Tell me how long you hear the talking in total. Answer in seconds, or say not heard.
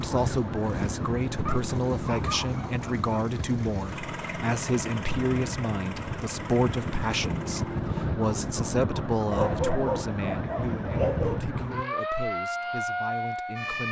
14 s.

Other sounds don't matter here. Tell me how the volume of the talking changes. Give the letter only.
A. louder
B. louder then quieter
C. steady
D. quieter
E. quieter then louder
D.